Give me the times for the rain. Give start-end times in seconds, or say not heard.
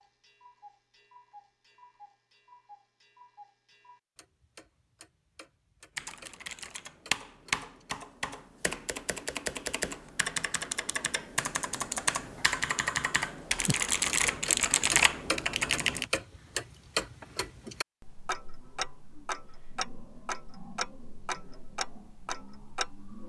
not heard.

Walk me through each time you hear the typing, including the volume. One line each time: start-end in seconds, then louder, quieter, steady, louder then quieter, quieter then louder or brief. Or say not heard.
6.0-16.1 louder.